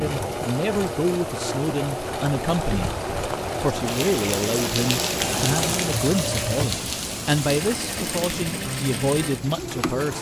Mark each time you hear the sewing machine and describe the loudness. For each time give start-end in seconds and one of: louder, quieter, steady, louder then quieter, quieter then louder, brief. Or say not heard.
0.0-10.1 steady.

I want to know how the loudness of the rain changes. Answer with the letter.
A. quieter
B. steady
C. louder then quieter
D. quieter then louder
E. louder
C.